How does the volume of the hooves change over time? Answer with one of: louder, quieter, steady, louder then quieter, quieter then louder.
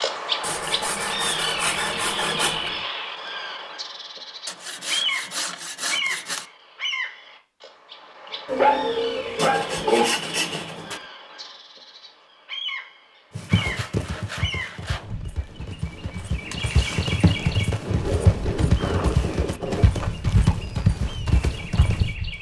louder.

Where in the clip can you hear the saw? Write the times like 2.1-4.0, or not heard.
0.4-2.9, 4.5-6.5, 9.3-11.0, 13.4-15.2, 17.9-19.9.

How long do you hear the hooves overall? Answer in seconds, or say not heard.
9 s.